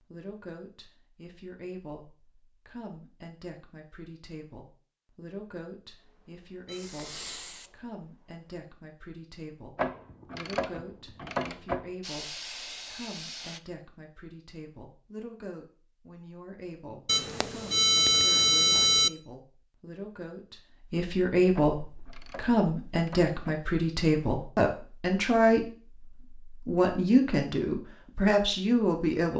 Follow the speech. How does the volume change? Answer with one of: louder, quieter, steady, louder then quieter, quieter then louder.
louder.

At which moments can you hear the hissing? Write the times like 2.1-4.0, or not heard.
6.0-8.4, 12.0-13.6.